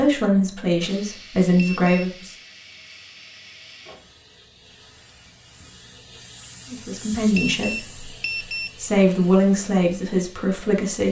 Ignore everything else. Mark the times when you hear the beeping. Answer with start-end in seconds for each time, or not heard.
1.6-2.1, 7.3-8.8.